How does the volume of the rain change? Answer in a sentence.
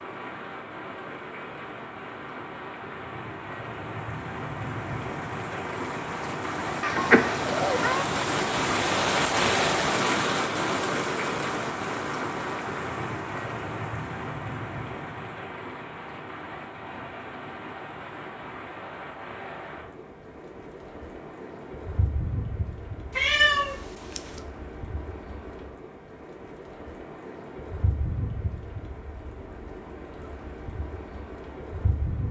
The loudness of the rain goes up, then down.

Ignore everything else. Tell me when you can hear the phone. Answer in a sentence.
You can't hear the phone here.